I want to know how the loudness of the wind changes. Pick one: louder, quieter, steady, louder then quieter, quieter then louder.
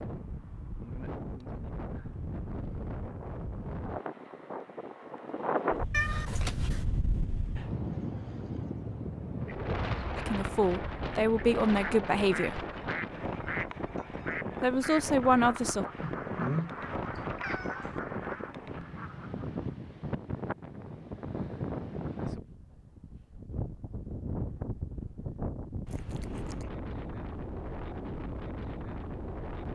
steady.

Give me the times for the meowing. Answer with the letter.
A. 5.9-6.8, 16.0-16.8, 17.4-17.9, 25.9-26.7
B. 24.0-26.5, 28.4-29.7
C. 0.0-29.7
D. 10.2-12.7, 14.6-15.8
A.